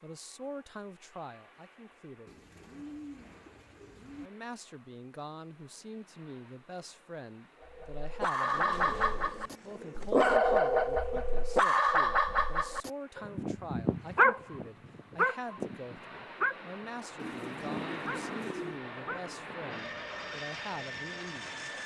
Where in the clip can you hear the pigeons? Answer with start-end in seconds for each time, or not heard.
2.2-4.3, 8.4-10.3, 17.1-18.8.